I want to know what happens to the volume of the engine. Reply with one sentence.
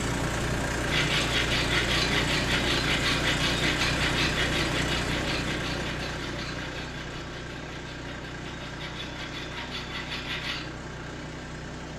The loudness of the engine goes down.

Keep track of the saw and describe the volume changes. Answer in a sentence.
The loudness of the saw goes down, then up.